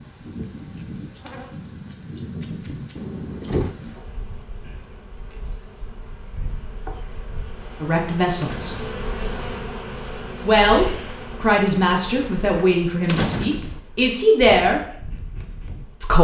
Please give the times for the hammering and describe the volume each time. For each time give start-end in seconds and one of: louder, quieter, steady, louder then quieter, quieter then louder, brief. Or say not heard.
not heard.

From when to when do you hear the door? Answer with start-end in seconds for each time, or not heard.
3.0-3.8, 8.4-8.9, 13.1-13.8.